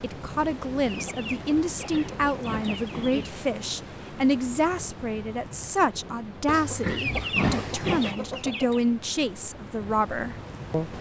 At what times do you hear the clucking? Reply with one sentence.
The clucking can be heard from 0.8 to 3.4 s and from 6.7 to 8.8 s.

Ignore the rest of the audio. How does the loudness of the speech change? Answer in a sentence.
The volume of the speech stays about the same.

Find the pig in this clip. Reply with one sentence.
The pig can be heard from 1.6 to 3.4 s and from 6.5 to 8.2 s.